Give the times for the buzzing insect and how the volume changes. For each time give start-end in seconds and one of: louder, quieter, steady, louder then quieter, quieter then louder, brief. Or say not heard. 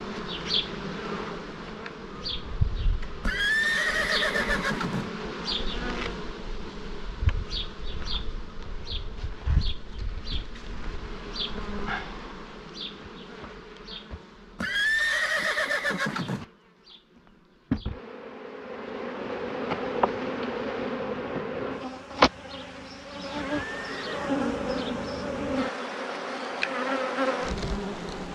0.0-28.2 quieter then louder.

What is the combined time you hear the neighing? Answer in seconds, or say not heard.
5 s.